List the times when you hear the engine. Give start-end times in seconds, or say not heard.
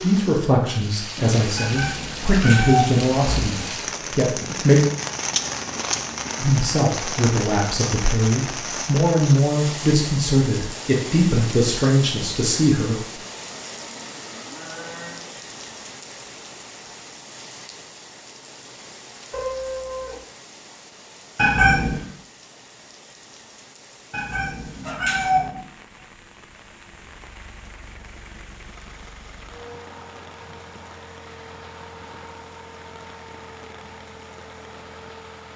27.1-35.5.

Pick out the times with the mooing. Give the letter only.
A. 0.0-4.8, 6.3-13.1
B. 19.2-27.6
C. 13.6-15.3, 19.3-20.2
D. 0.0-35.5
C.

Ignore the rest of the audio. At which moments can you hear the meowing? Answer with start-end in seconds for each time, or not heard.
1.6-3.5, 21.4-22.0, 24.1-25.6.